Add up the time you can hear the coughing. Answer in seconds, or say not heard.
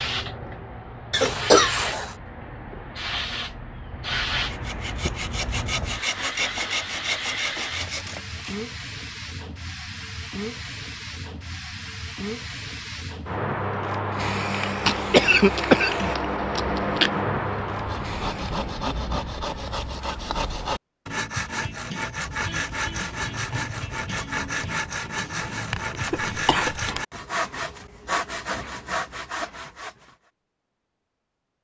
4 s.